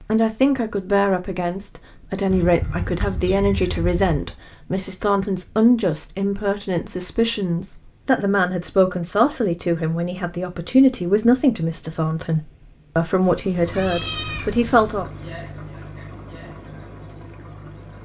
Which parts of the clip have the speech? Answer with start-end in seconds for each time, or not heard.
0.0-15.1.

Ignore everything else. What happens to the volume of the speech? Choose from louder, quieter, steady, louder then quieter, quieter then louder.
steady.